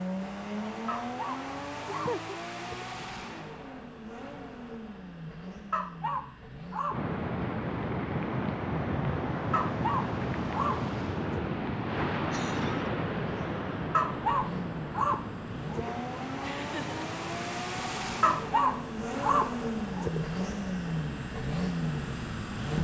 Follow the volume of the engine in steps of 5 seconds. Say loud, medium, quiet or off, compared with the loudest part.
medium, quiet, medium, loud, loud.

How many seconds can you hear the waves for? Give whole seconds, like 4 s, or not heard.
16 s.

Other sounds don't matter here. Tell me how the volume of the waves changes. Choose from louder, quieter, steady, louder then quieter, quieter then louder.
quieter.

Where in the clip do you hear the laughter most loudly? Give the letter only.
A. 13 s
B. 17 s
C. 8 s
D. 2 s
D.